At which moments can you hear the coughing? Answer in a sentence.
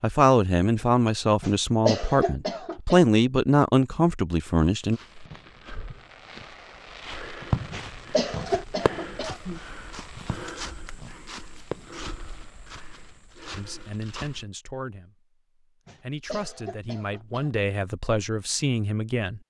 The coughing can be heard from 1.4 to 3.0 s, from 7.7 to 9.6 s and from 15.8 to 17.6 s.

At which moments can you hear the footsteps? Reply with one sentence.
The footsteps can be heard from 4.5 to 14.4 s.